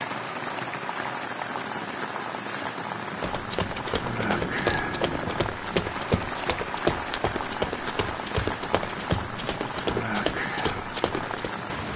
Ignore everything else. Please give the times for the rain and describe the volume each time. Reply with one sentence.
The rain can be heard from 0.0 to 11.9 s, at a steady volume.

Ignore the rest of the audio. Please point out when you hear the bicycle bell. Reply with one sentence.
You can hear the bicycle bell from 4.2 to 5.4 s.